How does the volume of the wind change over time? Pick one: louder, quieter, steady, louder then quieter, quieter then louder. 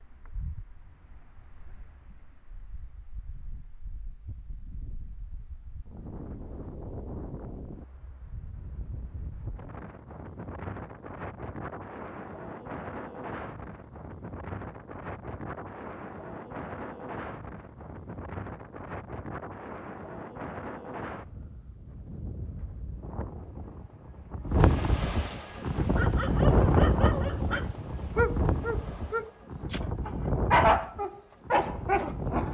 louder.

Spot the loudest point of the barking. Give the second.
31 s.